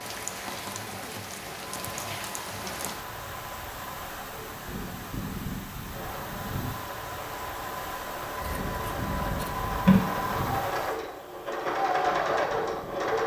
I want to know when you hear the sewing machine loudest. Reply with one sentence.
The volume of the sewing machine peaks at 12 seconds.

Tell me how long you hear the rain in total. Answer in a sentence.
You can hear the rain for 13 seconds altogether.